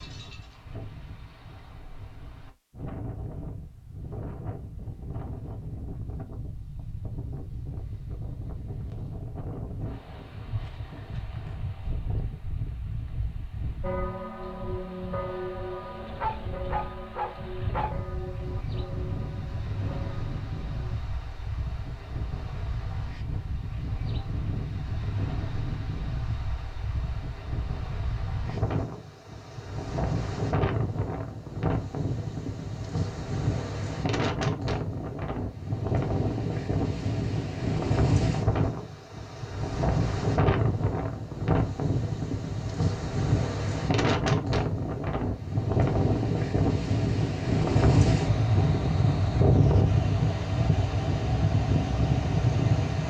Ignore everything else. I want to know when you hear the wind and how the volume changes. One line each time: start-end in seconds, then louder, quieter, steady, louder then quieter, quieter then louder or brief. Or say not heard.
0.0-53.0 louder.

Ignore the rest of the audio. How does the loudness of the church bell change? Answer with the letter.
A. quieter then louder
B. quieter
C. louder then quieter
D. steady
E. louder
B.